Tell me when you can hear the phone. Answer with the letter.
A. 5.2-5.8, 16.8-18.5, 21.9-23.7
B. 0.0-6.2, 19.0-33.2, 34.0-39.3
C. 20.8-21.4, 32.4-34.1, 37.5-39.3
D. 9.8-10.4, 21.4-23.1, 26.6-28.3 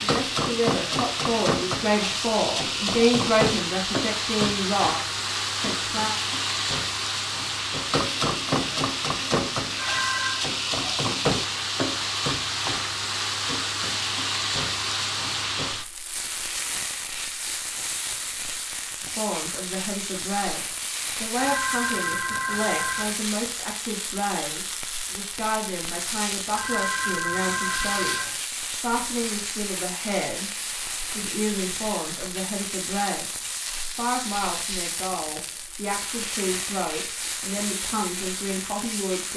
D.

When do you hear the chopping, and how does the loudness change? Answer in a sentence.
You can't hear the chopping here.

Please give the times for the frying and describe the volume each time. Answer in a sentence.
You can hear the frying from 0.0 to 39.3 s, getting quieter.